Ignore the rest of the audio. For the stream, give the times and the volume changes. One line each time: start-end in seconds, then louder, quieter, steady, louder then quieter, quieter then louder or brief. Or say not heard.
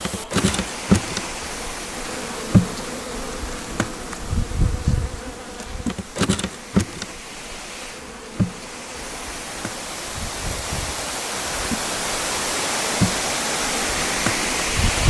0.0-15.0 quieter then louder.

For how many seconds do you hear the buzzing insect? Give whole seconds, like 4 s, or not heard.
15 s.